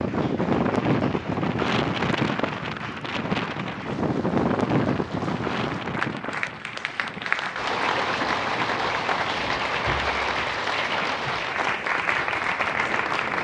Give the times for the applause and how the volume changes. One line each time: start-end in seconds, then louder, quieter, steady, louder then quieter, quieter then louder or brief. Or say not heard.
0.0-13.3 louder.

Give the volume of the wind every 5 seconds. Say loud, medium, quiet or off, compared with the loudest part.
loud, medium, quiet.